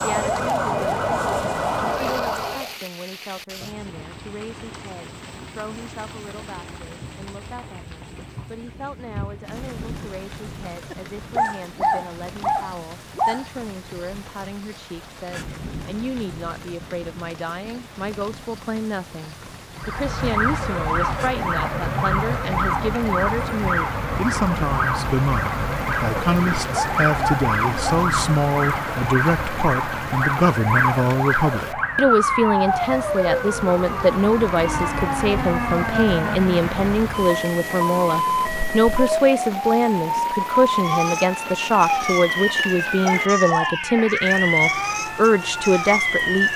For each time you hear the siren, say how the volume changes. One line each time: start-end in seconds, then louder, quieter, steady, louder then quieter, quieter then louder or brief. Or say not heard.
0.0-2.8 brief
19.8-46.5 steady.